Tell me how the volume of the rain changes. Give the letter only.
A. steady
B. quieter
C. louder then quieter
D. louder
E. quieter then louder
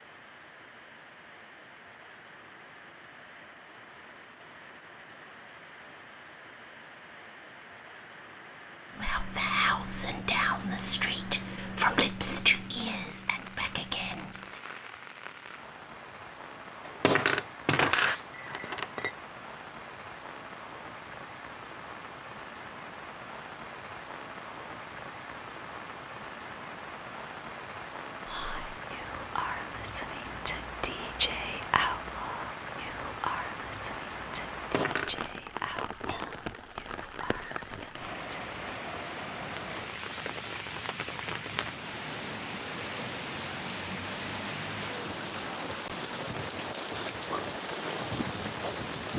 D.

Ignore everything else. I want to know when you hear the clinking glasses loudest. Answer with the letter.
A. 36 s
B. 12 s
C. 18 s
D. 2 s
C.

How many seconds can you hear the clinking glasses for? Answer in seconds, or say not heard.
3 s.